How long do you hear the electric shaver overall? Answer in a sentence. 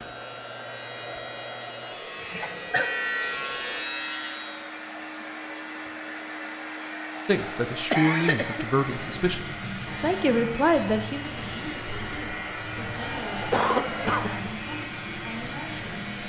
You can hear the electric shaver for 12 seconds altogether.